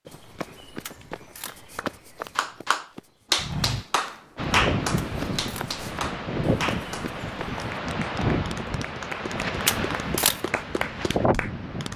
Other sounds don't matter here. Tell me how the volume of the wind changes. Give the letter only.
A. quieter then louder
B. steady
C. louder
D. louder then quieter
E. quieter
B.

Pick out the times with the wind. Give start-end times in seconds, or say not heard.
4.3-11.9.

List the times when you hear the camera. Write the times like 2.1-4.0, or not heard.
0.8-1.6, 5.0-5.7, 9.7-10.4.